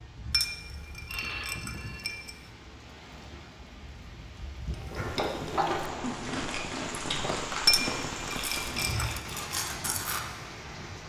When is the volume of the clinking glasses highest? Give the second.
8 s.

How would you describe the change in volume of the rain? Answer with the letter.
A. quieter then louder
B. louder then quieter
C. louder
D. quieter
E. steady
C.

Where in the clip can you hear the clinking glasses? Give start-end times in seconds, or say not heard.
0.3-2.4, 7.7-9.2.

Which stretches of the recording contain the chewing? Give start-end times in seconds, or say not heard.
4.7-10.2.